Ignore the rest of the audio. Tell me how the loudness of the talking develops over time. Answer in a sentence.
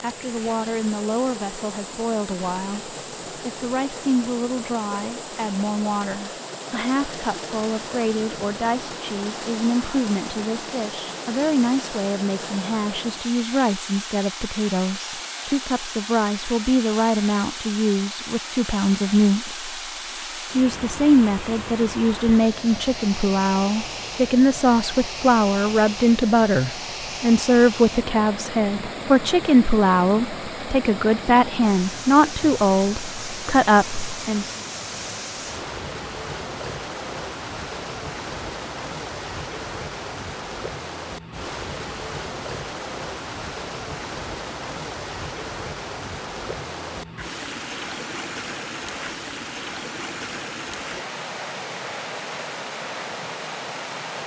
The loudness of the talking goes up.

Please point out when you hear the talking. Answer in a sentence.
The talking can be heard from 0.0 to 19.6 s and from 20.6 to 34.5 s.